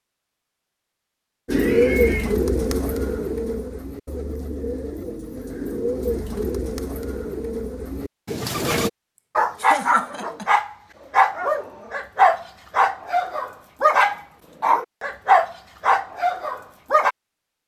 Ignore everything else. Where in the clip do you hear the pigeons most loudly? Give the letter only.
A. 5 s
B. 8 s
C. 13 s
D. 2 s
D.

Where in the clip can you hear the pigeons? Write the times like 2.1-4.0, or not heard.
1.4-8.9.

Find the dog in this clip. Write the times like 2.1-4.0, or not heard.
9.3-17.1.